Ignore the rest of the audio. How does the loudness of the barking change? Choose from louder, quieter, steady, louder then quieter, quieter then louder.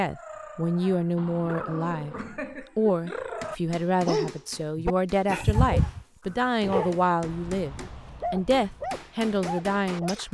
louder then quieter.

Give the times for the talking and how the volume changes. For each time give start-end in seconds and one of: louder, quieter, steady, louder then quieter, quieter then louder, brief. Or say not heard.
0.0-10.2 steady.